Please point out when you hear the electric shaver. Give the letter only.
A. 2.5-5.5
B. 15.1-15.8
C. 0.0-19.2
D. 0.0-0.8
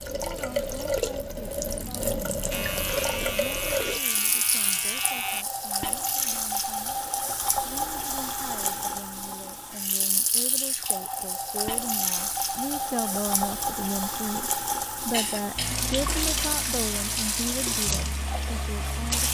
A.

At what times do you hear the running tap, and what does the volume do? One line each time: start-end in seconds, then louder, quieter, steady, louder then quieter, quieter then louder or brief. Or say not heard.
0.0-19.2 steady.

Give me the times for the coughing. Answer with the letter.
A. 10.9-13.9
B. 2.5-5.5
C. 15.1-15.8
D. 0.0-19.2
C.